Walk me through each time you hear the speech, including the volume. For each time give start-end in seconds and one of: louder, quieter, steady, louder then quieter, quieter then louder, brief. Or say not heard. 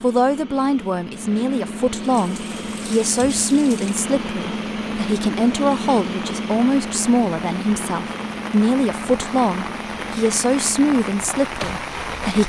0.0-12.4 steady.